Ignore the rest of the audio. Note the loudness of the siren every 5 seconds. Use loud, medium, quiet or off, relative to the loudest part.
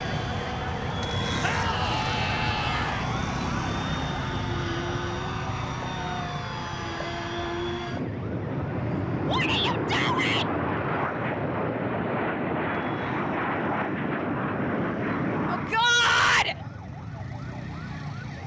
loud, medium, quiet, medium.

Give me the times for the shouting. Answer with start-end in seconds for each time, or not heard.
1.4-3.0, 9.2-10.5, 15.4-16.6.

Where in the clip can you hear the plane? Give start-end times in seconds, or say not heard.
0.0-15.8.